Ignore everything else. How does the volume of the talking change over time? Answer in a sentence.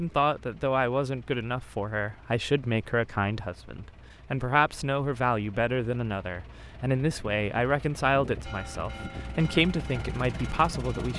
The loudness of the talking stays about the same.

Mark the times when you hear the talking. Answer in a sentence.
The talking can be heard from 0.0 to 11.1 s.